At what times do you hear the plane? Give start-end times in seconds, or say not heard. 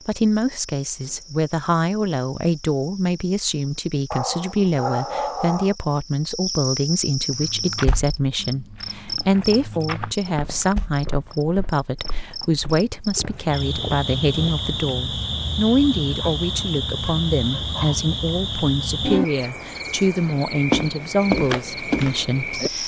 not heard.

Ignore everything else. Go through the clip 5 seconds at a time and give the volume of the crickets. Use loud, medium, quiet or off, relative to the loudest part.
quiet, medium, medium, loud, loud.